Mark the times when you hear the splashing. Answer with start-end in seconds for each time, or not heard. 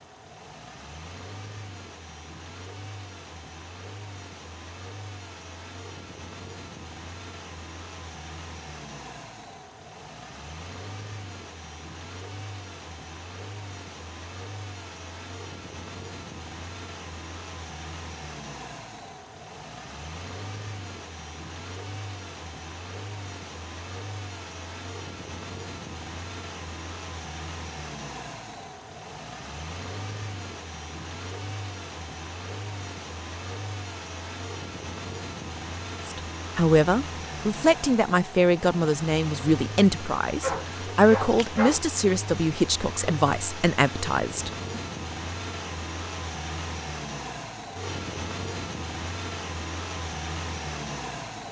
not heard.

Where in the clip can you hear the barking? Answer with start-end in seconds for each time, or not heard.
40.4-41.9.